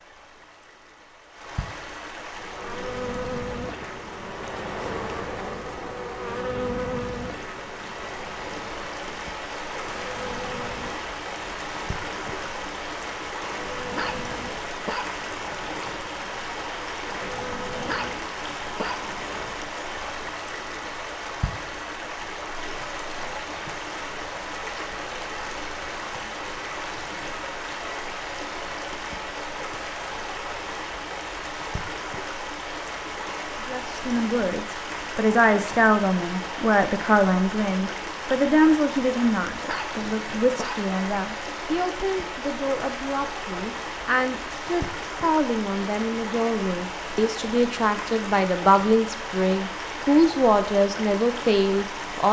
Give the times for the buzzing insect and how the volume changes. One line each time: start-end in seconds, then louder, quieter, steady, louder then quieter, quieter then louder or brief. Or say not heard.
2.3-19.7 quieter.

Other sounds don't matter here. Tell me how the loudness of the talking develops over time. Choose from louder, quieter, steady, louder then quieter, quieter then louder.
quieter then louder.